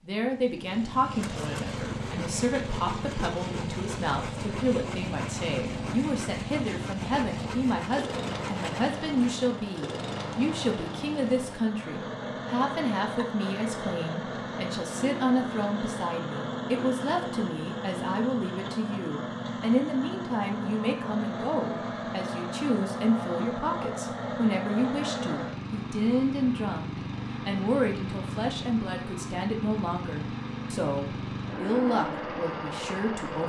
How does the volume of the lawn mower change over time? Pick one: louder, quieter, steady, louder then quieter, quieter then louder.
steady.